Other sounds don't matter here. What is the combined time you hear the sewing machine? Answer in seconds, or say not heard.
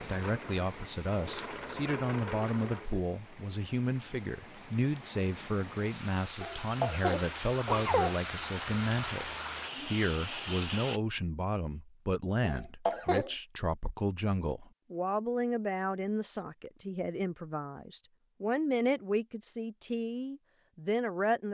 3 s.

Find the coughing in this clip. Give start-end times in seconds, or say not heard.
6.4-8.2, 12.4-13.3.